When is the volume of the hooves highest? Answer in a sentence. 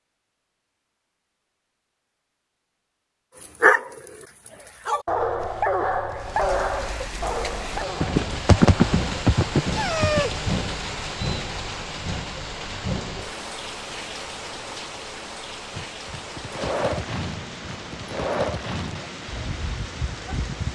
The loudest moment of the hooves is at 9 seconds.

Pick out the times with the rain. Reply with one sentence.
You can hear the rain from 6.1 to 20.7 s.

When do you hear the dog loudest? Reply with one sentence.
The loudest moment of the dog is at 4 seconds.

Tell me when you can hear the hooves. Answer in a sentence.
The hooves can be heard from 8.0 to 10.4 s and from 15.7 to 20.7 s.